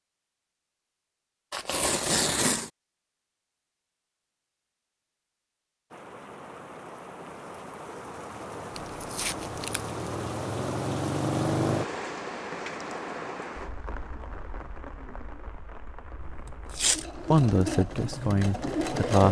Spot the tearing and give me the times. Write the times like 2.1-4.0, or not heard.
1.5-2.7, 8.8-9.8, 16.2-17.1.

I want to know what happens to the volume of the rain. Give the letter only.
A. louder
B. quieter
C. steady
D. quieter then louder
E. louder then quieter
E.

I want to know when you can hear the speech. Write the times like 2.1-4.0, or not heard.
17.3-19.2.